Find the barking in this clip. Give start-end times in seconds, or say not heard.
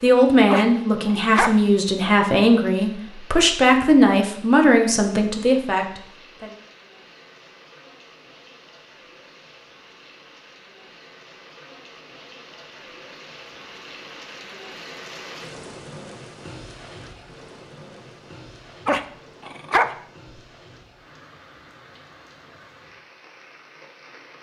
0.5-1.6, 18.9-19.9.